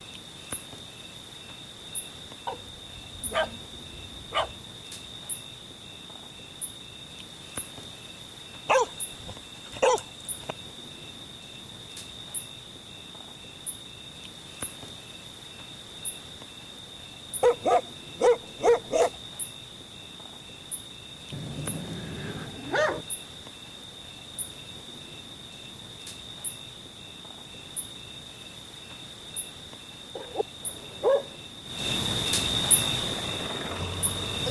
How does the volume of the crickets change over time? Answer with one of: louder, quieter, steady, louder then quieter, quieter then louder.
louder.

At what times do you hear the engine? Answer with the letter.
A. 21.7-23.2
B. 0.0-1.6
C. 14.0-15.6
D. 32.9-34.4
D.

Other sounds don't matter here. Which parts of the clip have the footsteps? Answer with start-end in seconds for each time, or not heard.
not heard.